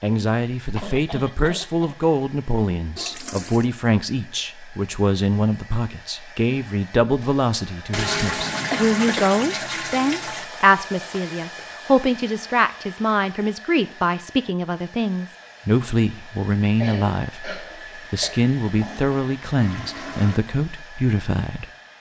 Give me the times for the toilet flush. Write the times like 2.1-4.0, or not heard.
3.0-3.6, 7.9-10.5, 18.6-20.4.